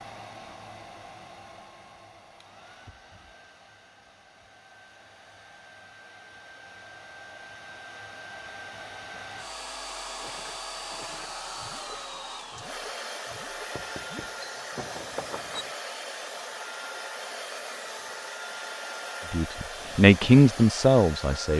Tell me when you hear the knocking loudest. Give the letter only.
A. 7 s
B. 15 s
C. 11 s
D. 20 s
B.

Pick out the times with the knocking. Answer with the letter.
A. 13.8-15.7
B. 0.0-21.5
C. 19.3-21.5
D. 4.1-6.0
A.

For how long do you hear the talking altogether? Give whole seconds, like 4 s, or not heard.
2 s.